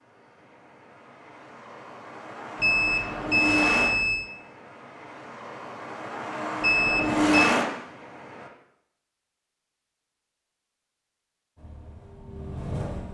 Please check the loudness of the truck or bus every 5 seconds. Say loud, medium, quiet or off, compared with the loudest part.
medium, loud, medium.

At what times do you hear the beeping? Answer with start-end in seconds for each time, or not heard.
2.6-4.3, 6.6-7.5.